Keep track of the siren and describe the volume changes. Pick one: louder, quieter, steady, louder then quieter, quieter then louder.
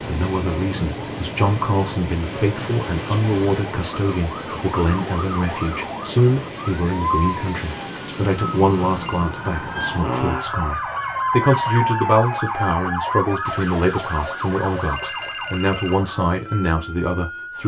louder then quieter.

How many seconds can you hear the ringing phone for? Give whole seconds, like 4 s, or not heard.
5 s.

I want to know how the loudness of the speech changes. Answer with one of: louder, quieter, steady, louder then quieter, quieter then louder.
steady.